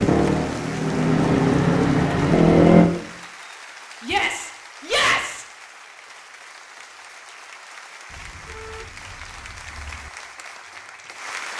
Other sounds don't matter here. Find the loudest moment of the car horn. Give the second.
9 s.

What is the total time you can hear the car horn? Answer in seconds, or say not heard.
2 s.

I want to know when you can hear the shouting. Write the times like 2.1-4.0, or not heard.
4.0-5.5.